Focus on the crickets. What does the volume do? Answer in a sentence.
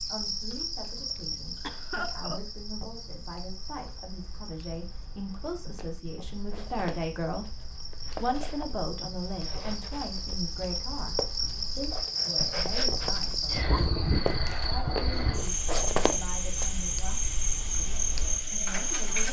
The loudness of the crickets goes down, then up.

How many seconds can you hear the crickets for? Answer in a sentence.
The crickets can be heard for 19 seconds in total.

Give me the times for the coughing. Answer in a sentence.
You can hear the coughing from 1.1 to 2.4 s.